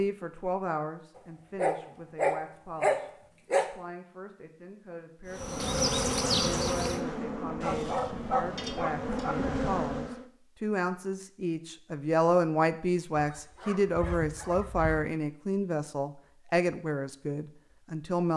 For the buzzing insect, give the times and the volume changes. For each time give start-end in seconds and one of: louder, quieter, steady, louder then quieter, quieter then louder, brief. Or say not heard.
5.3-10.2 quieter then louder.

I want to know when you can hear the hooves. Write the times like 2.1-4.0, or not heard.
not heard.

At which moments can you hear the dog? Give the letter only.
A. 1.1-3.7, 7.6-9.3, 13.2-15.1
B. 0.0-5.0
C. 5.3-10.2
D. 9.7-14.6
A.